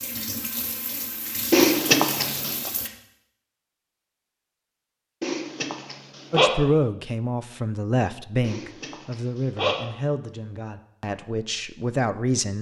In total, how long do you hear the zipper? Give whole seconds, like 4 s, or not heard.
4 s.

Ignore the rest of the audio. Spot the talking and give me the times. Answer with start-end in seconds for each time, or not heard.
6.3-12.5.